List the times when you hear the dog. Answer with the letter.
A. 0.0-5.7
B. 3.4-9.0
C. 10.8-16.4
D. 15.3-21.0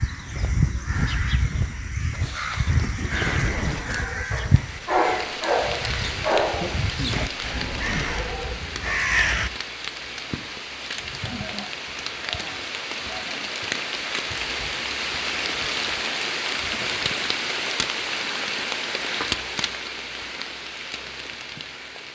B.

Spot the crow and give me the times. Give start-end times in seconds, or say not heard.
0.0-9.5.